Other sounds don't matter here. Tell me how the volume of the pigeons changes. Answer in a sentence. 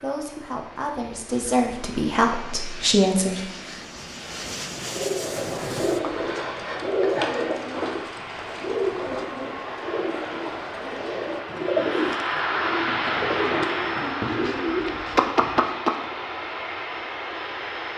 The volume of the pigeons goes down, then up.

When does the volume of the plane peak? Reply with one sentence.
The volume of the plane peaks at 13 seconds.